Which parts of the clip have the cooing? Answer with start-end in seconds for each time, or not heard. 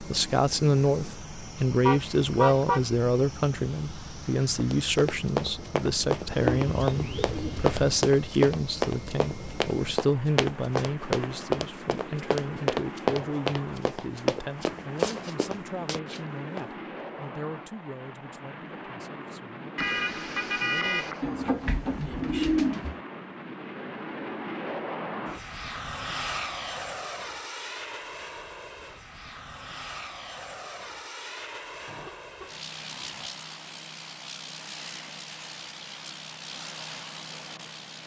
6.3-8.0, 21.2-22.9.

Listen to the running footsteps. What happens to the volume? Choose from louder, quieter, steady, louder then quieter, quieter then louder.
steady.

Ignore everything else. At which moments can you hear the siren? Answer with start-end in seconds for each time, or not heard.
not heard.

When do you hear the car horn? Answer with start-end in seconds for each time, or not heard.
1.8-2.9, 19.8-21.2, 31.9-33.3.